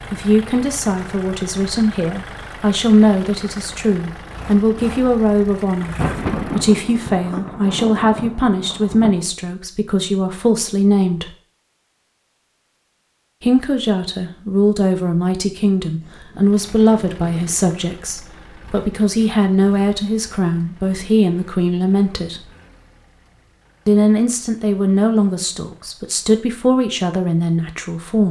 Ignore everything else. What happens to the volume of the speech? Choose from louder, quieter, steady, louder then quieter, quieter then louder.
steady.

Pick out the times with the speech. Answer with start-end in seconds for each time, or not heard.
0.1-11.3, 13.4-22.5, 23.9-28.2.